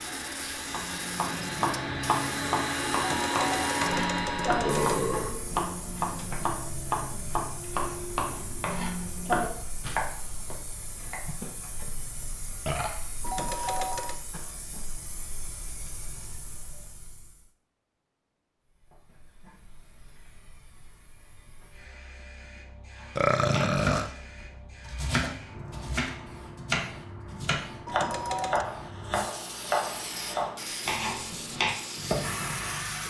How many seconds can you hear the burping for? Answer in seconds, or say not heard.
4 s.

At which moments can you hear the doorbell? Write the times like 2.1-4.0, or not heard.
3.0-5.0, 13.2-14.2, 27.9-28.6.